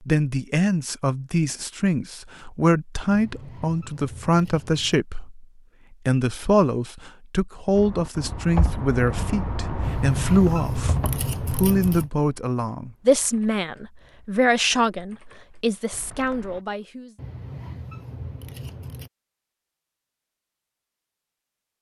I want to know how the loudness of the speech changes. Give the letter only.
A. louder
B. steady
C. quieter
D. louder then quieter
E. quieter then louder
B.